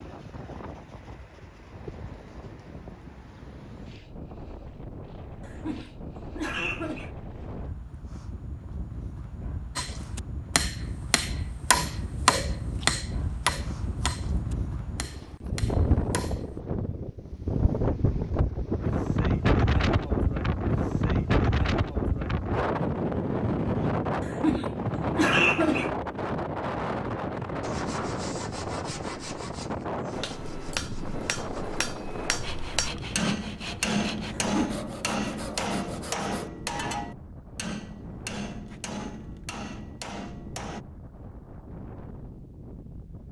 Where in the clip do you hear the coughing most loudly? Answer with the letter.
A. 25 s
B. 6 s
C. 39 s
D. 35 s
A.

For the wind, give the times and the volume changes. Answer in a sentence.
The wind can be heard from 0.0 to 43.2 s, getting louder then quieter.